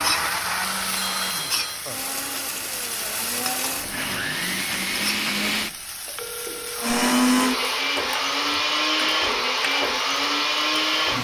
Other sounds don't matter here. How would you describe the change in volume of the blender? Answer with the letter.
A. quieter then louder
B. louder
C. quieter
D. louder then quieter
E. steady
B.